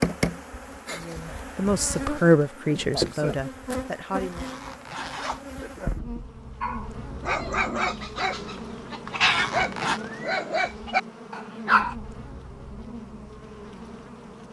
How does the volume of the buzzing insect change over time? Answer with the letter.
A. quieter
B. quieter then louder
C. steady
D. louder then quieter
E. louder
A.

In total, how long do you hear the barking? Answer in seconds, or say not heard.
5 s.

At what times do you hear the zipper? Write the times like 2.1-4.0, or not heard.
4.2-5.5, 9.1-10.0.